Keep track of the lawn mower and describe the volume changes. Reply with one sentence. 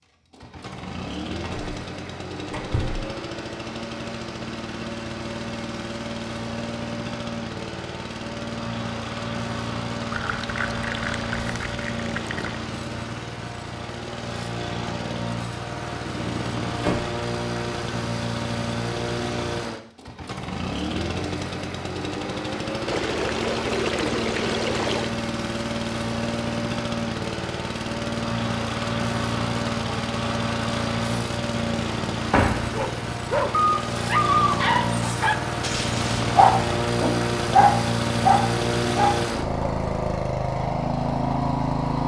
The loudness of the lawn mower goes up.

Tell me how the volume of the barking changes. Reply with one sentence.
The loudness of the barking stays about the same.